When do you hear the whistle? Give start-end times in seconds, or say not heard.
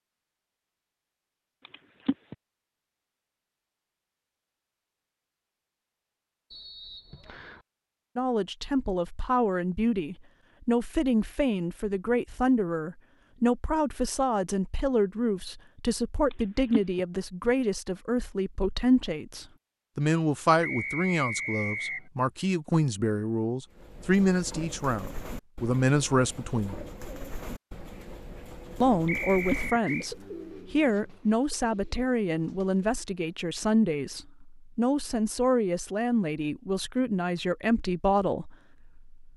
6.5-7.6, 20.6-22.1, 29.1-30.1.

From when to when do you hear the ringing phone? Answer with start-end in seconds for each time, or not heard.
1.6-2.4, 16.3-17.0, 29.1-29.8.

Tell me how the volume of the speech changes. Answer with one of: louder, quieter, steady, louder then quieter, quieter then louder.
steady.